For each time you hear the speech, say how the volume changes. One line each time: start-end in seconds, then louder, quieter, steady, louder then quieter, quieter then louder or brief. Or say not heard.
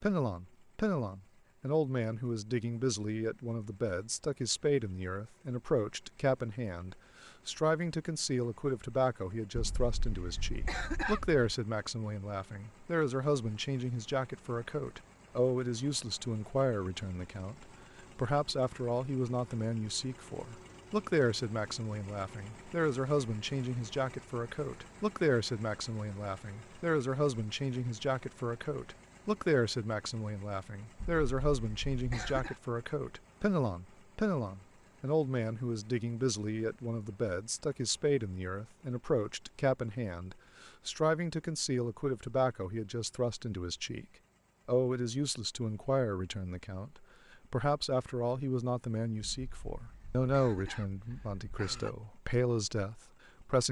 0.0-44.0 steady
44.6-53.6 steady.